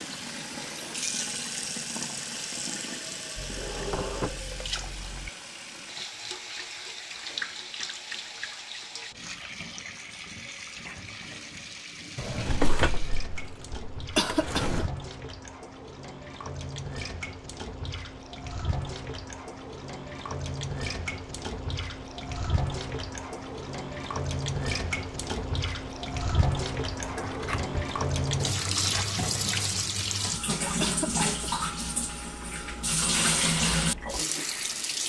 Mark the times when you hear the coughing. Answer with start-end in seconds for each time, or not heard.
14.2-14.9, 30.8-31.6.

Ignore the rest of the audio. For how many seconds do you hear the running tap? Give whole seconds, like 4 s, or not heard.
35 s.